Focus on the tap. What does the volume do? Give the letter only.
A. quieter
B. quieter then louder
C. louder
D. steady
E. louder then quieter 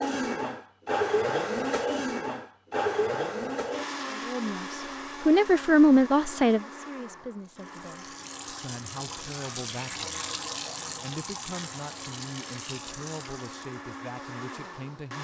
E.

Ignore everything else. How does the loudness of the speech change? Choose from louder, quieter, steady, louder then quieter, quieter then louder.
quieter.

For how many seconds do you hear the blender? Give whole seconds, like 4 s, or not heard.
15 s.